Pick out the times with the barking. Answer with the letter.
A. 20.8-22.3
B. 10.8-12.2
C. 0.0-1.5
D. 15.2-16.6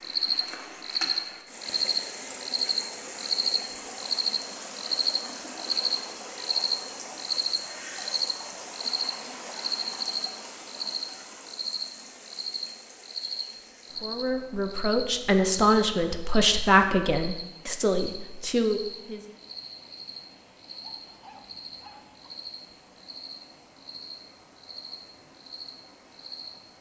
A.